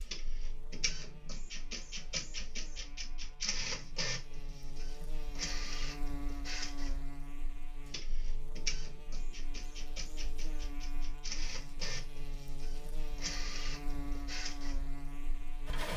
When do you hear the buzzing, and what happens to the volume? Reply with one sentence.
You can hear the buzzing from 0.0 to 15.9 s, getting louder.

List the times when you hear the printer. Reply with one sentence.
The printer can be heard from 0.0 to 15.9 s.